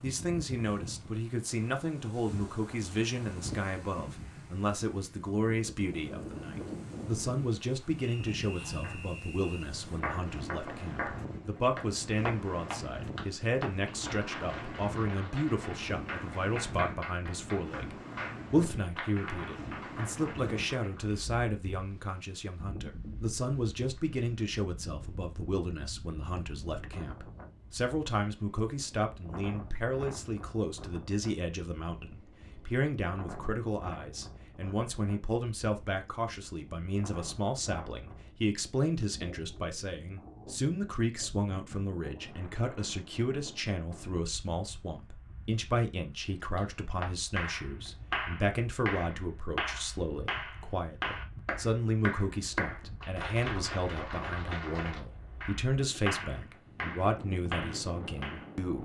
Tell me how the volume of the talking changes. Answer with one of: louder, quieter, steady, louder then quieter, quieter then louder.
steady.